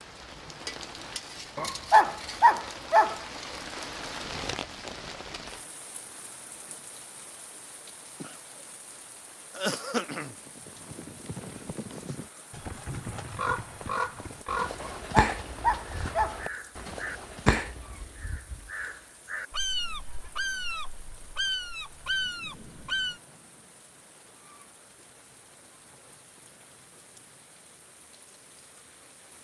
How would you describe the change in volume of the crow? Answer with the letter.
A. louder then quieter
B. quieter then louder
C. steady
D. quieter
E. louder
B.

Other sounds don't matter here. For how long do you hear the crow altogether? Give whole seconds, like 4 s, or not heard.
10 s.